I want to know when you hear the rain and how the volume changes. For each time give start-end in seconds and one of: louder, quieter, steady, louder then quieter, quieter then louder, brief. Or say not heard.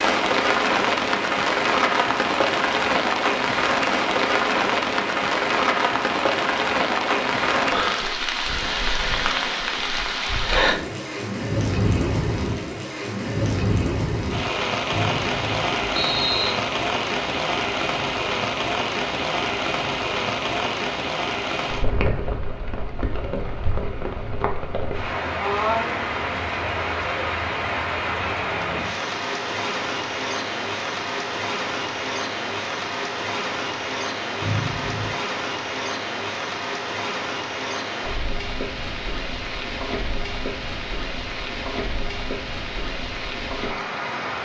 0.0-44.3 quieter.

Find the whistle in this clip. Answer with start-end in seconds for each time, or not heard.
14.9-16.6, 34.4-35.2.